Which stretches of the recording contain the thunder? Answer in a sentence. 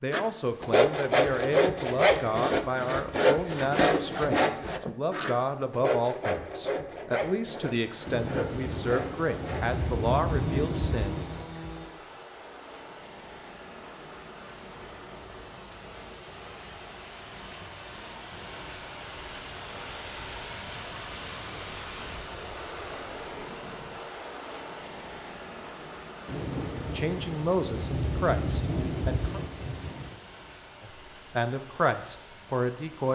The thunder can be heard from 8.1 to 11.4 s and from 26.2 to 30.1 s.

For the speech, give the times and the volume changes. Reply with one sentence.
You can hear the speech from 0.0 to 11.2 s, at a steady volume; briefly from 26.9 to 29.4 s; and briefly from 30.8 to 33.1 s.